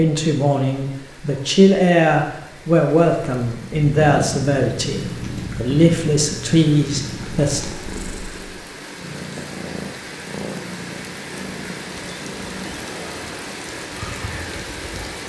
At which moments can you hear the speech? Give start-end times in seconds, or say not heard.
0.0-7.6.